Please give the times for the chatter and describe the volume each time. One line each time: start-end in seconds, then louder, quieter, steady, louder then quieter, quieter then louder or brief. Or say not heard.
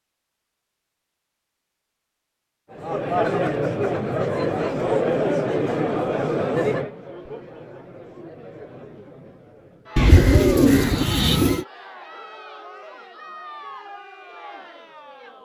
2.7-15.4 quieter.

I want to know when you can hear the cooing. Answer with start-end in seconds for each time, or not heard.
9.9-11.7.